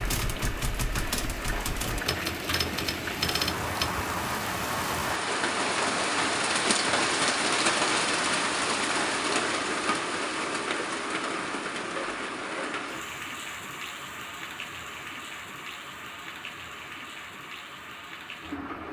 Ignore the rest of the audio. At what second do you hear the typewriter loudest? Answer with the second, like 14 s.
3 s.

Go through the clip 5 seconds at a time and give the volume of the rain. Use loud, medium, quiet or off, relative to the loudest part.
medium, loud, medium, quiet.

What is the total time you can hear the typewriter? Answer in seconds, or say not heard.
4 s.